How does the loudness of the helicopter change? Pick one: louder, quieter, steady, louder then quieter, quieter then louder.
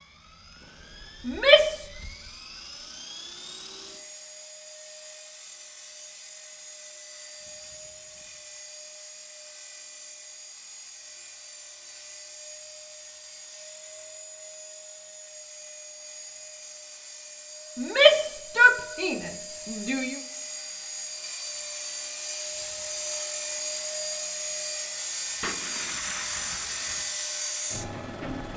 louder.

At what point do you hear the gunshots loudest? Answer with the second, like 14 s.
26 s.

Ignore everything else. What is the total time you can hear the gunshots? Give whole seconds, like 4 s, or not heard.
2 s.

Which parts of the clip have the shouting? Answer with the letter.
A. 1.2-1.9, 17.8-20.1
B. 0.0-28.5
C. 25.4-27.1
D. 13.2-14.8
A.